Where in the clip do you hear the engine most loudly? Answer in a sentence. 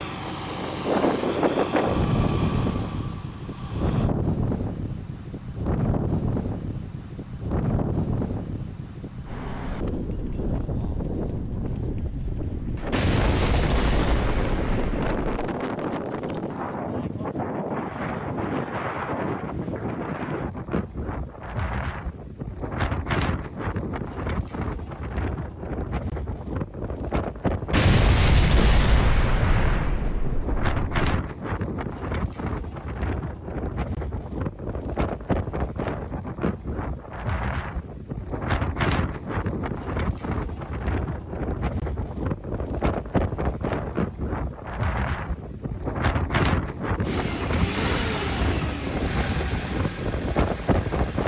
The volume of the engine peaks at 48 seconds.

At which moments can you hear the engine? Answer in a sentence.
You can hear the engine from 0.0 to 4.1 s and from 47.0 to 51.2 s.